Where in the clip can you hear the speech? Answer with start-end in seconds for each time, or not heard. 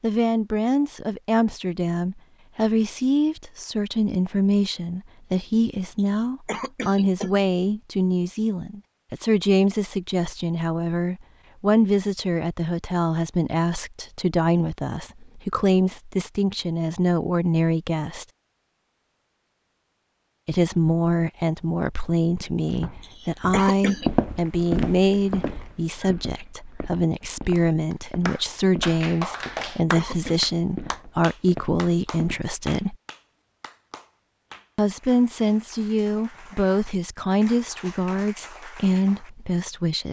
0.0-18.2, 20.4-33.0, 34.8-40.0.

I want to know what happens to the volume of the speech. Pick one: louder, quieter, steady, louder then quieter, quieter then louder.
steady.